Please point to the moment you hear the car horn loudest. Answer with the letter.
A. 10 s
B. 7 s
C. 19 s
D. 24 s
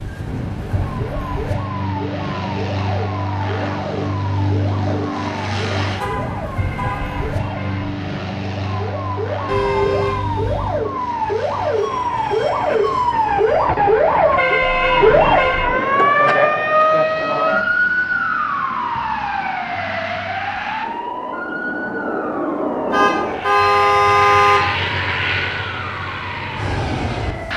D.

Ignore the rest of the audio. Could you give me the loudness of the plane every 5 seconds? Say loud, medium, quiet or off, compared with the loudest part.
loud, loud, medium, medium, loud, loud.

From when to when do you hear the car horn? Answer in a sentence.
The car horn can be heard from 6.0 to 7.2 s, from 9.4 to 10.8 s and from 22.9 to 24.6 s.